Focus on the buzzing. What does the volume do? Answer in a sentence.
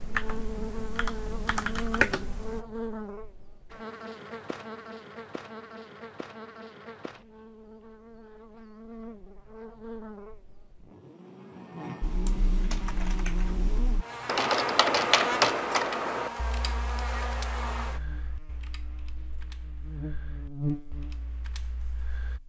The volume of the buzzing goes down, then up.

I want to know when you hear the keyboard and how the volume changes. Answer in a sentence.
The keyboard can be heard briefly from 0.0 to 2.6 s; and from 12.0 to 22.4 s, getting louder then quieter.